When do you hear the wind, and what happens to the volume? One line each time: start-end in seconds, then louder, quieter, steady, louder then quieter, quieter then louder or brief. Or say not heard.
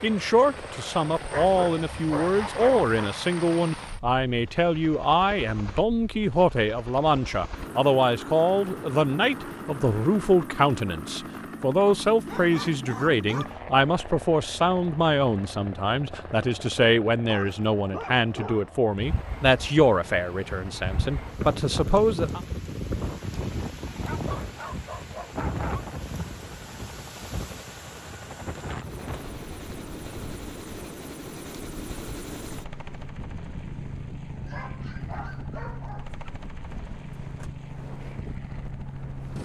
18.9-39.3 quieter.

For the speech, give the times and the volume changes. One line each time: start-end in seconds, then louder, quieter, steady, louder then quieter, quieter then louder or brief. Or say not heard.
0.0-22.4 steady.